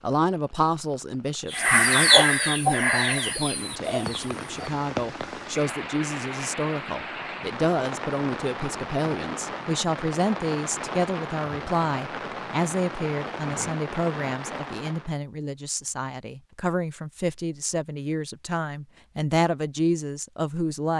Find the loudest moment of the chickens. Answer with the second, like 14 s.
2 s.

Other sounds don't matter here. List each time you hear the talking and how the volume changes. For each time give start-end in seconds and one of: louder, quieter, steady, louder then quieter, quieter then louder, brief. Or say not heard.
0.0-20.9 steady.